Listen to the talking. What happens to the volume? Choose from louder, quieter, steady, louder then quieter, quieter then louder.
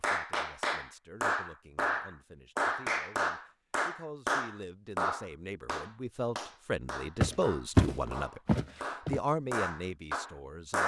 louder.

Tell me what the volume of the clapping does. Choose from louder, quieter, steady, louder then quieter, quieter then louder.
quieter then louder.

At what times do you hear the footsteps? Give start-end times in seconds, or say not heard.
7.2-9.2.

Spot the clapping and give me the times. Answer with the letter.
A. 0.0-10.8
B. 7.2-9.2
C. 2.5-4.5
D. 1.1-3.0
A.